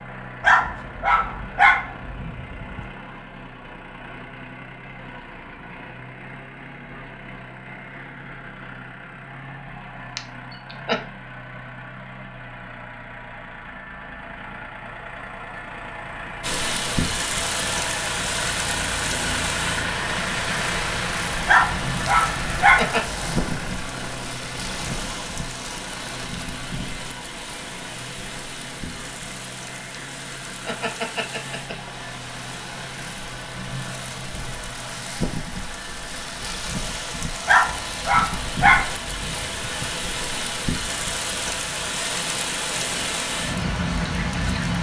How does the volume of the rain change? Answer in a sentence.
The volume of the rain goes down, then up.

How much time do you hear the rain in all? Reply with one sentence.
The rain can be heard for 28 seconds in total.